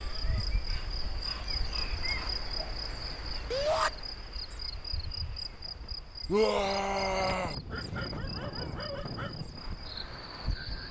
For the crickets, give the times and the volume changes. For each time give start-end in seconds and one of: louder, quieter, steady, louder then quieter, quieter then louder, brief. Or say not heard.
0.0-10.8 quieter.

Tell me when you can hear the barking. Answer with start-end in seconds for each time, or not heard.
0.7-2.3, 7.7-9.4.